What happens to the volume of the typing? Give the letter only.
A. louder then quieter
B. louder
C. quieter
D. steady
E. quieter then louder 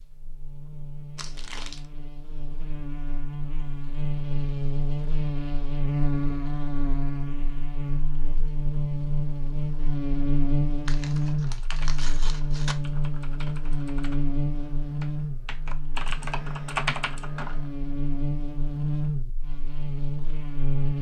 B.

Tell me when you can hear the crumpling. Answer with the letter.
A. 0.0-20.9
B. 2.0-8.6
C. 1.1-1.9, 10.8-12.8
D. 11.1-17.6
C.